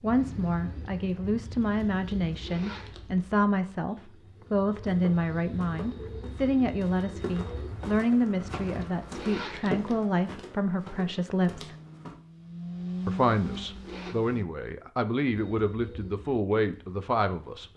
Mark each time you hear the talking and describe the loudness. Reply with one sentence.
You can hear the talking from 0.0 to 11.8 s, at a steady volume; and from 13.1 to 17.7 s, getting louder.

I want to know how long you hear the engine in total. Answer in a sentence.
The engine can be heard for 3 seconds in total.